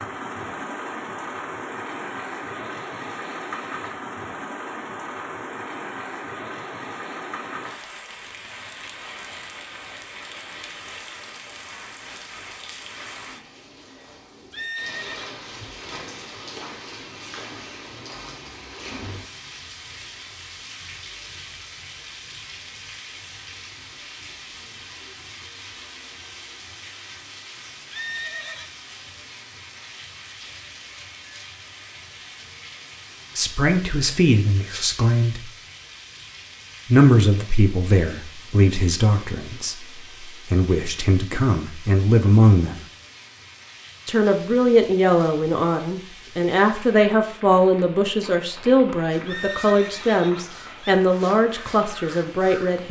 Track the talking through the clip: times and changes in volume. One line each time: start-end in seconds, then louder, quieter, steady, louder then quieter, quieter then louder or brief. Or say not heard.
33.4-35.5 brief
36.9-42.8 quieter then louder
44.0-52.8 steady.